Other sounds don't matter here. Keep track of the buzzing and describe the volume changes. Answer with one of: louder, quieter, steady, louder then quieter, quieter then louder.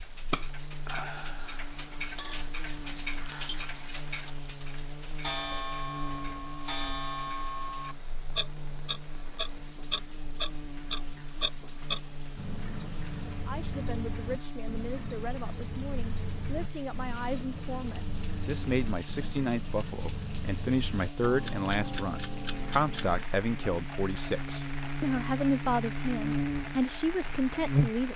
louder.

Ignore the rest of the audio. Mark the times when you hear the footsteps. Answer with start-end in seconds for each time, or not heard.
not heard.